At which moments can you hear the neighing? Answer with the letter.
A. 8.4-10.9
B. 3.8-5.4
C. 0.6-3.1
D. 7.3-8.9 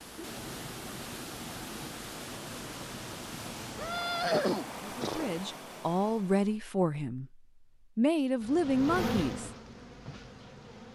B.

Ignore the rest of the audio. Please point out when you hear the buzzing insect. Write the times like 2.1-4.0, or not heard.
8.4-10.9.